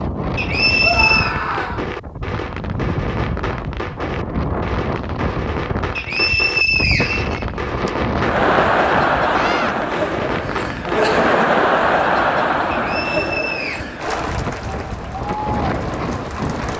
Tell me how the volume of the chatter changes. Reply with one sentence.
The volume of the chatter goes down.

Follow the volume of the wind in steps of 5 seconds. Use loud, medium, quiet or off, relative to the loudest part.
loud, loud, medium, loud.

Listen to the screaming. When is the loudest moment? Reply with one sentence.
The loudest moment of the screaming is at 1 second.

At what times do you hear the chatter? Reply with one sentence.
You can hear the chatter from 8.2 to 16.7 s.